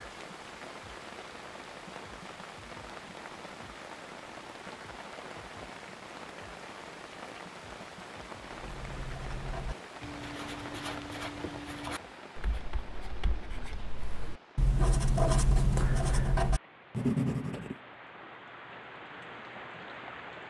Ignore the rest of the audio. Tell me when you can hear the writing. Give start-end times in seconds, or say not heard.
8.4-17.8.